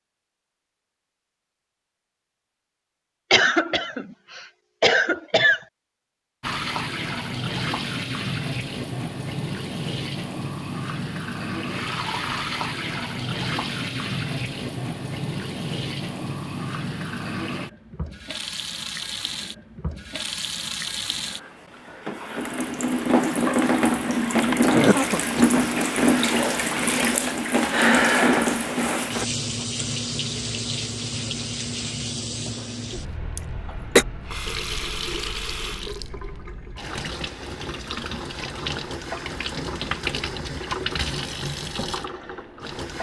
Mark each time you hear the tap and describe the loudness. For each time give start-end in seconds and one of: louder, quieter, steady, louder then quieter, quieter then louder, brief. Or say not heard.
6.4-42.9 louder then quieter.